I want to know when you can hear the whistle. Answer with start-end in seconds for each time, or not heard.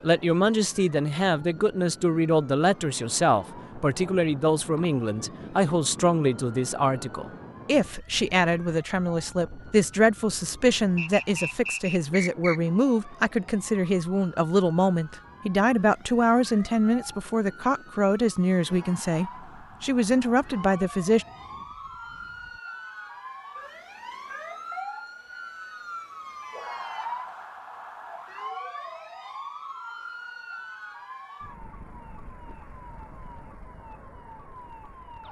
10.9-12.6.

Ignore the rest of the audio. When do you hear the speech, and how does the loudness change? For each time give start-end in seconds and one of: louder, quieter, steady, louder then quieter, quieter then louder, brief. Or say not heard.
0.0-21.2 steady.